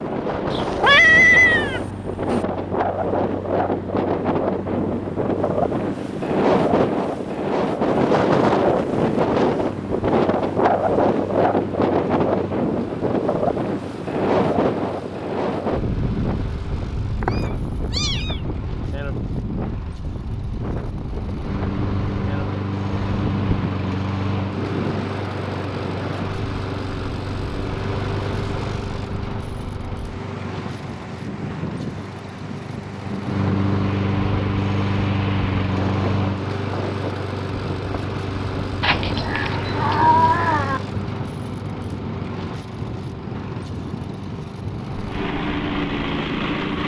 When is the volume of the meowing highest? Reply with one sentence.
The loudest moment of the meowing is at 1 second.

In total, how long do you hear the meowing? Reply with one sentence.
The meowing can be heard for 5 seconds in total.